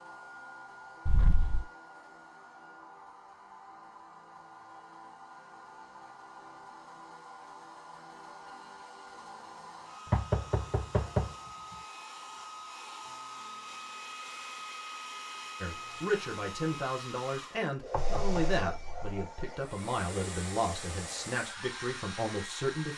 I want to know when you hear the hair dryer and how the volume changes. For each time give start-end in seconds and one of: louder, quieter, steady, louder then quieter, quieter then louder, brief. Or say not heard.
0.0-22.9 louder.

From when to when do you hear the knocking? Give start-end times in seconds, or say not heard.
1.1-1.6, 10.1-11.3, 17.9-19.1.